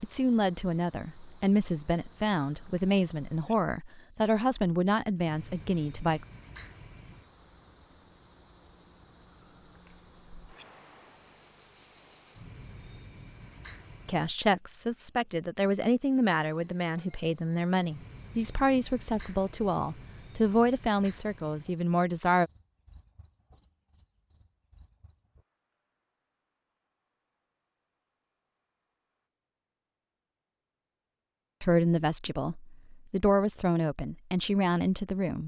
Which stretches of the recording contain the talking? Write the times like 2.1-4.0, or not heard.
0.0-6.2, 14.1-22.5, 31.6-35.4.